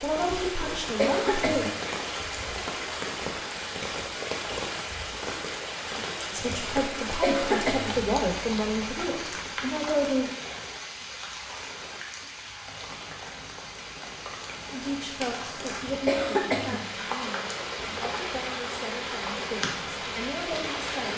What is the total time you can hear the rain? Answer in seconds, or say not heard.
21 s.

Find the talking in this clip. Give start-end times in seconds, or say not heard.
0.0-1.6, 6.2-10.3, 14.7-21.1.